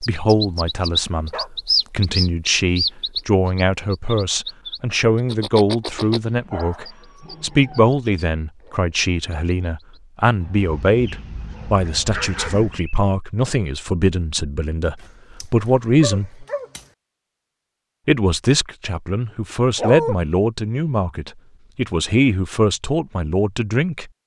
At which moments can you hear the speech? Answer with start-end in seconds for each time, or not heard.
0.0-16.4, 18.1-24.1.